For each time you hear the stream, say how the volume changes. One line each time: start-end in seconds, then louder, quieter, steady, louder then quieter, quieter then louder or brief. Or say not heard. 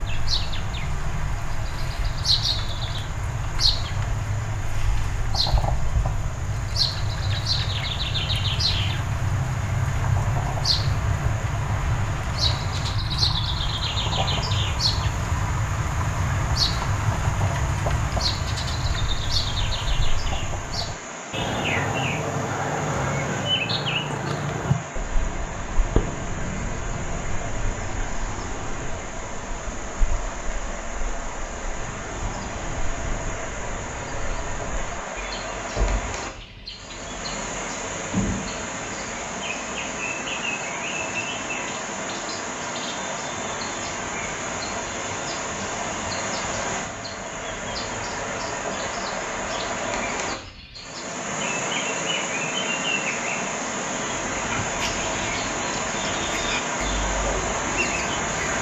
0.0-58.5 louder.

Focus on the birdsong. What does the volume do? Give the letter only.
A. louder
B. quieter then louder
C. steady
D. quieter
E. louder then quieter
D.